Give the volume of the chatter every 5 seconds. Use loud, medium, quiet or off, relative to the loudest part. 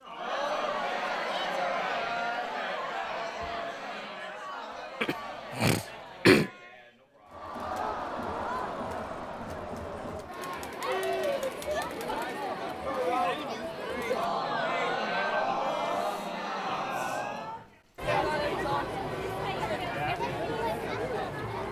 loud, medium, loud, loud, loud.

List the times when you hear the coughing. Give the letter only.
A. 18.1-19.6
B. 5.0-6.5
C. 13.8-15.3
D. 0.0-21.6
B.